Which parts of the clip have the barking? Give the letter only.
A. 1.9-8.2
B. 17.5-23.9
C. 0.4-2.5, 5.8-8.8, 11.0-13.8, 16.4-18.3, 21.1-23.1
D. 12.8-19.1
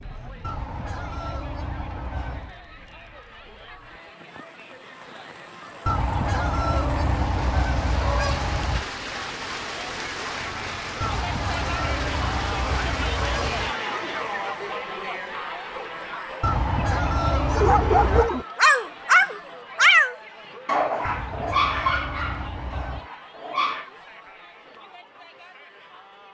B.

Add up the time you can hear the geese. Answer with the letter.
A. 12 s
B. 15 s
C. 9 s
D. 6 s
A.